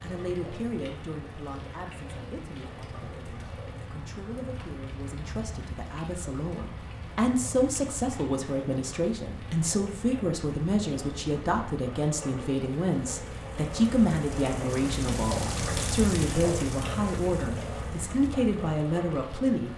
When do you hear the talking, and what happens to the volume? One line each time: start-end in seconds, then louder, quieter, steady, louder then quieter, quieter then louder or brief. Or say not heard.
0.0-19.7 louder.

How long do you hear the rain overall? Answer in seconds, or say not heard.
20 s.